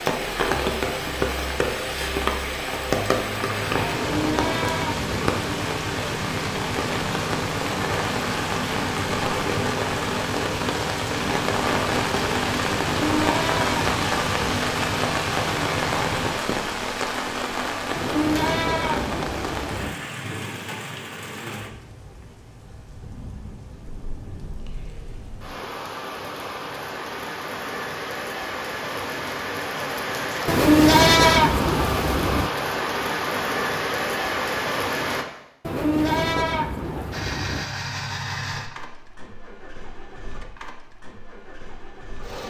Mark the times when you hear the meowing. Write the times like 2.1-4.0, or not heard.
not heard.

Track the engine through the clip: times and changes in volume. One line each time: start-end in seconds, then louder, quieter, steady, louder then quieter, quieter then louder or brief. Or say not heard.
3.6-16.4 steady
37.1-42.4 quieter.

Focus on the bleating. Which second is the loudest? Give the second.
31 s.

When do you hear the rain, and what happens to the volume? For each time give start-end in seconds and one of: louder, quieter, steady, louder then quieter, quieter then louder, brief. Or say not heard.
0.0-35.2 quieter then louder.